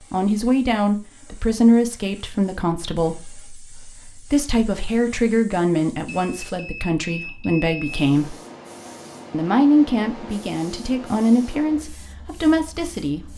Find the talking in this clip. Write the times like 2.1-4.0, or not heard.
0.1-8.3, 9.3-13.3.